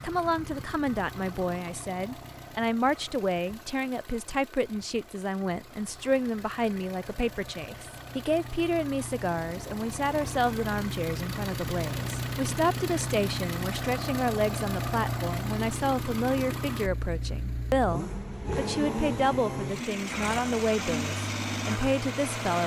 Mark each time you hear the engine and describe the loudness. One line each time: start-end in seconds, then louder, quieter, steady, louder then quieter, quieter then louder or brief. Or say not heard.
0.0-22.6 louder.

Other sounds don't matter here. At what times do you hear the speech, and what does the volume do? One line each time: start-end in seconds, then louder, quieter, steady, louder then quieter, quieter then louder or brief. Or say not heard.
0.0-22.6 steady.